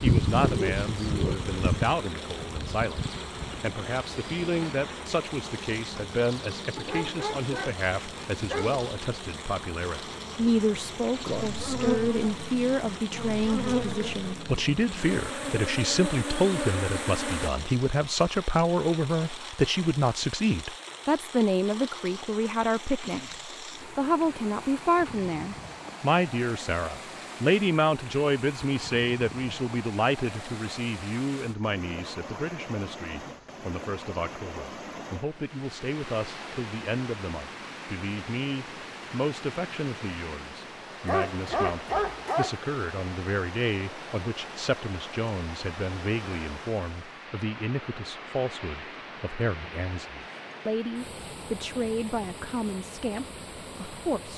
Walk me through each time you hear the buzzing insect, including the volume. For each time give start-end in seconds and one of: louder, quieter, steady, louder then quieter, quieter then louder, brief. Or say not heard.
0.0-17.5 quieter then louder.